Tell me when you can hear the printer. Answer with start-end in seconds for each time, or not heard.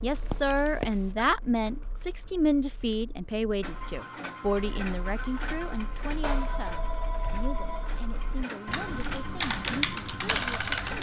3.6-10.9.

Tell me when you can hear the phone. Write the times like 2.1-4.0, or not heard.
0.3-1.4, 6.2-8.0.